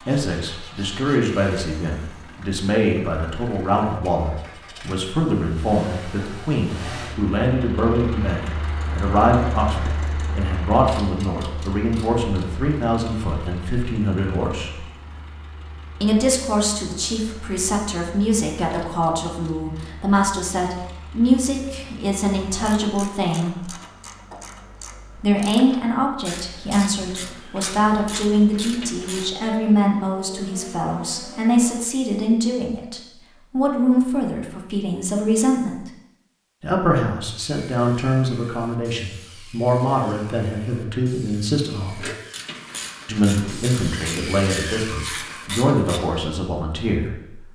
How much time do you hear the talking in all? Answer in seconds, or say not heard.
43 s.